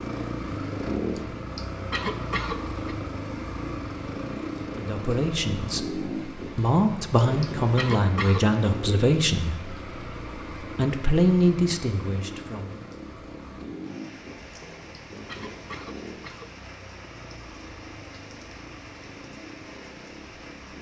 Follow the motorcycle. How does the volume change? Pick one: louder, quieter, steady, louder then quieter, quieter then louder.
quieter.